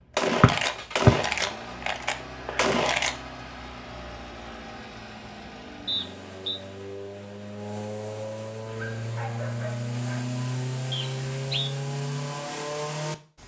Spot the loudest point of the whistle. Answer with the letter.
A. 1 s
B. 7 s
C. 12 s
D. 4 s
A.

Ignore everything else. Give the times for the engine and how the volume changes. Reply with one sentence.
The engine can be heard from 0.0 to 13.4 s, getting louder.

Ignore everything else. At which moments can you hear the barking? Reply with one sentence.
The barking can be heard from 8.7 to 10.2 s.